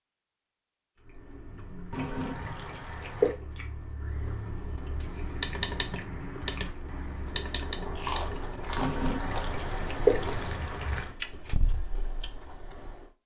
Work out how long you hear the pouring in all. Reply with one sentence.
The pouring can be heard for 4 seconds in total.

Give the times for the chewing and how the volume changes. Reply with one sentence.
You can hear the chewing from 0.9 to 13.1 s, getting louder then quieter.